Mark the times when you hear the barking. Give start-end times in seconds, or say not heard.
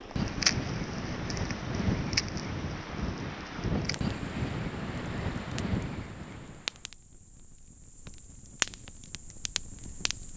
not heard.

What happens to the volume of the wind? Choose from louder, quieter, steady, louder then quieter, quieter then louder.
steady.